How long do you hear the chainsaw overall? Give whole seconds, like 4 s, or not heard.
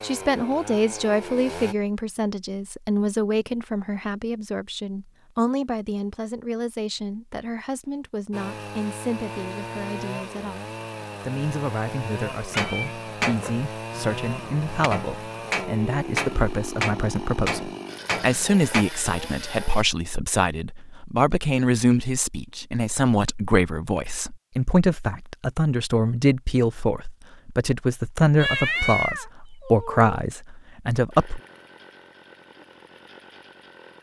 16 s.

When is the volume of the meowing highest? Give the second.
29 s.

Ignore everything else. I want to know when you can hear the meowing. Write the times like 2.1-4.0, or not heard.
12.5-13.6, 28.4-30.1.